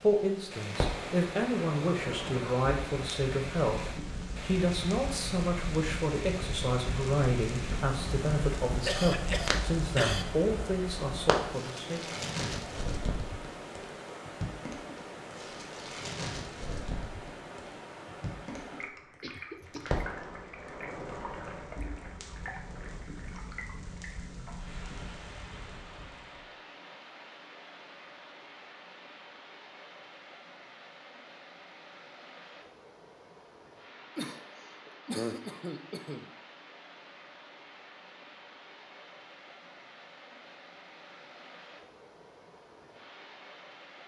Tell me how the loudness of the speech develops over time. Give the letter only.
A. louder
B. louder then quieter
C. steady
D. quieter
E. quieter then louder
C.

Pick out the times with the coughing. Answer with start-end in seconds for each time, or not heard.
8.8-10.2, 19.2-20.1, 34.1-36.3.